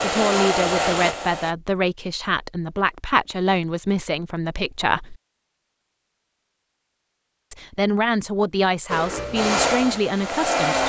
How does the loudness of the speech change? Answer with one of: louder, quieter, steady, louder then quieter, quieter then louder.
steady.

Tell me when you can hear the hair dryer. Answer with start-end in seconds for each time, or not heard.
0.0-1.6, 8.9-10.8.